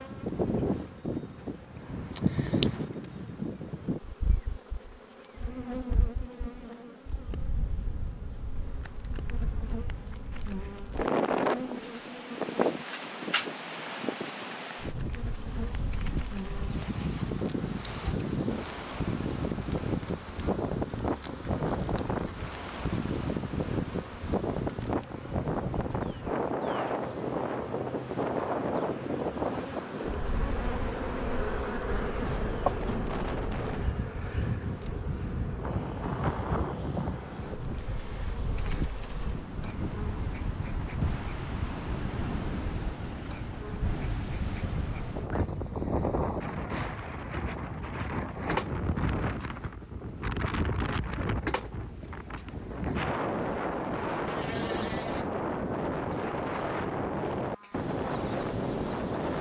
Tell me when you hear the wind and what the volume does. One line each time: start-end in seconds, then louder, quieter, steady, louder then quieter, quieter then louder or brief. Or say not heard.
0.0-59.3 steady.